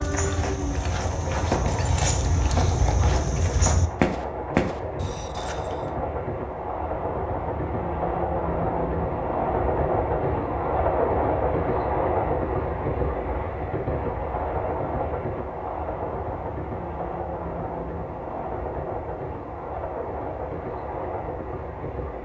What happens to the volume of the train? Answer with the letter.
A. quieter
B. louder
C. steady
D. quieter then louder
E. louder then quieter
E.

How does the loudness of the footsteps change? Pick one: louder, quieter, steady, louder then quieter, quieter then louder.
louder.